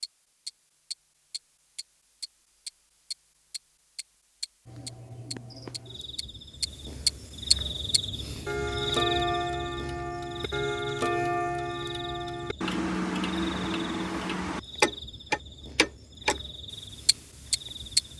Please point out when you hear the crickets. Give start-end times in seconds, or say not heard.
4.7-18.1.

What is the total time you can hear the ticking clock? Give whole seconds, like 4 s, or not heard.
17 s.